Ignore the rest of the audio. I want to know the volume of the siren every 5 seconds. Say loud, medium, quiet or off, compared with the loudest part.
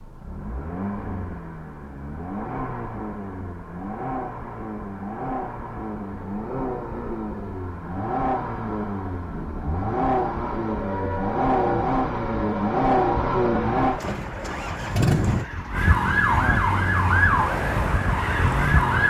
off, off, medium, loud.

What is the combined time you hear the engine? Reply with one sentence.
You can hear the engine for 19 seconds altogether.